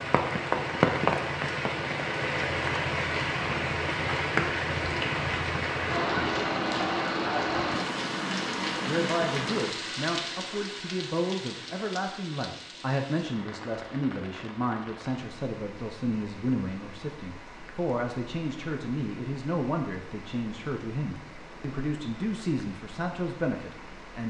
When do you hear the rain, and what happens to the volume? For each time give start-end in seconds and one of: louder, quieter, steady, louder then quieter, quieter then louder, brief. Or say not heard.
0.0-24.2 quieter.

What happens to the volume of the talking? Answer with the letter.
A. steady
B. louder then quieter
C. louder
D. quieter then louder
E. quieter
A.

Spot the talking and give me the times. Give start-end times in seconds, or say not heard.
8.8-24.2.